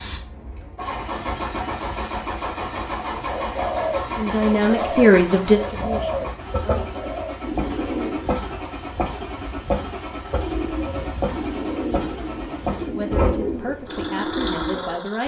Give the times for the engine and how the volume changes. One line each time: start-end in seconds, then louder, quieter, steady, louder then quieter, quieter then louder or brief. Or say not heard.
0.0-15.2 steady.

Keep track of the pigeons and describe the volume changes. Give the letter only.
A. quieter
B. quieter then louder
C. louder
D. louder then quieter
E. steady
E.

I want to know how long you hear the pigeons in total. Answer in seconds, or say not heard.
10 s.